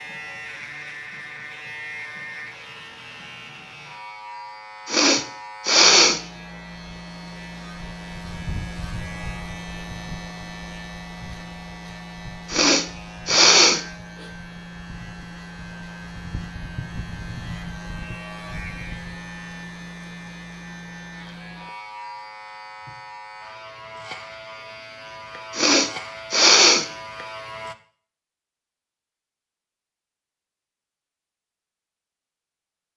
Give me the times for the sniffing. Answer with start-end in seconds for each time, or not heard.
4.8-6.2, 12.5-13.8, 25.5-26.9.